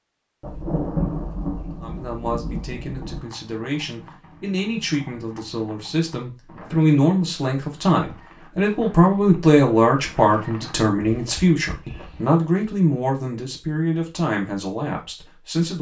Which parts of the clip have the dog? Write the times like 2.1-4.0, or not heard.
not heard.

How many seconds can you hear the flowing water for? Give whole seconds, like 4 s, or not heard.
not heard.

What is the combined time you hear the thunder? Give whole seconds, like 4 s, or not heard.
3 s.